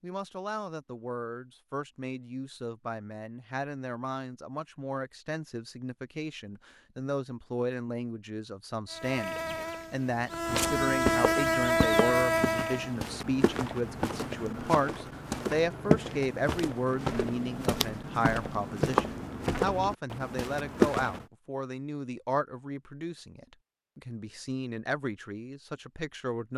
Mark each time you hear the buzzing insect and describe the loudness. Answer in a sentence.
You can hear the buzzing insect from 8.9 to 12.9 s, getting louder.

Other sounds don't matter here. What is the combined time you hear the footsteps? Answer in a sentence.
The footsteps can be heard for 11 seconds in total.